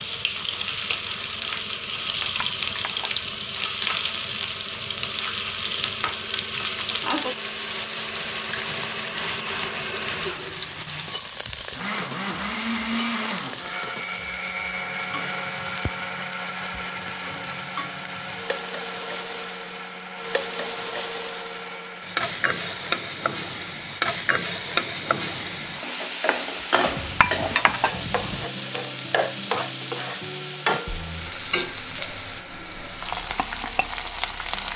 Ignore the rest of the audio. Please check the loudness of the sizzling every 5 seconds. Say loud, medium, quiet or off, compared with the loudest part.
loud, loud, medium, medium, loud, loud, loud.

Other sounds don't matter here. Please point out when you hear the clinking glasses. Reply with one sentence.
The clinking glasses can be heard from 2.0 to 3.3 s and from 26.9 to 28.4 s.